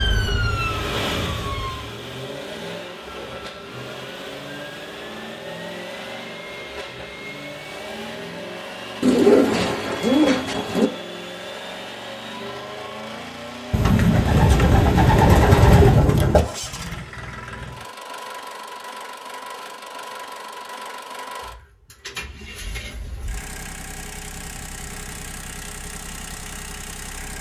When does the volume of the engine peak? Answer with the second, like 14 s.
1 s.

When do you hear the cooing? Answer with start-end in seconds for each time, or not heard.
9.0-10.9, 13.7-16.4.